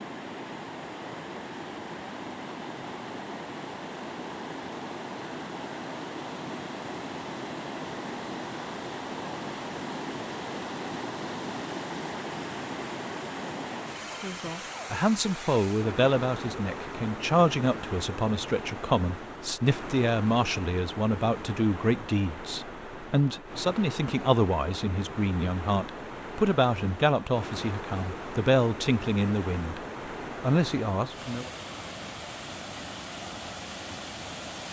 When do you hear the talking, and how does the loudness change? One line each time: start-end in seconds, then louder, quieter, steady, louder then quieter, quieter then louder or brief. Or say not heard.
14.2-29.8 steady
30.4-31.5 brief.